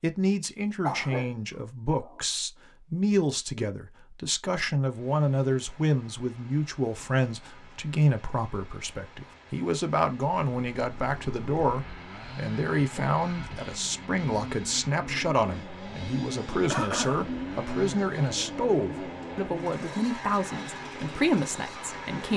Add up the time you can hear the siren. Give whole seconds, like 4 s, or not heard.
not heard.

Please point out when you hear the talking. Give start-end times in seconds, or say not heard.
0.0-22.3.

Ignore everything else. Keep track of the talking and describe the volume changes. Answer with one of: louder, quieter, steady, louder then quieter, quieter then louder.
steady.